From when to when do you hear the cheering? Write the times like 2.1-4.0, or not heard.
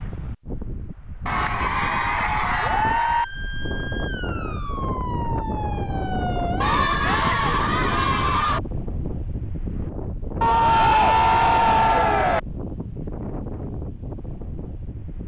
1.2-3.2, 6.6-8.6, 10.4-12.4.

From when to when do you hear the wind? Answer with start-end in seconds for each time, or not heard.
0.0-15.2.